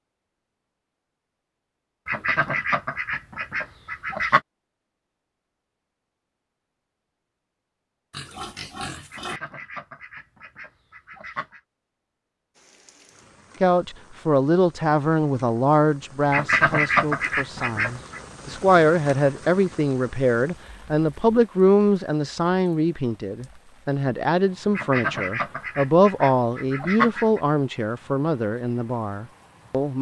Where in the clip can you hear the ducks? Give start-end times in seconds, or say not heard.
2.0-4.4, 9.1-11.6, 16.3-18.2, 24.8-27.4.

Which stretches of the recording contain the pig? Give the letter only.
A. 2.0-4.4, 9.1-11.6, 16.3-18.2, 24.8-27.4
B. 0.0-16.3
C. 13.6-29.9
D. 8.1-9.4
D.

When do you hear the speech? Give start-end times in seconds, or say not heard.
13.6-29.9.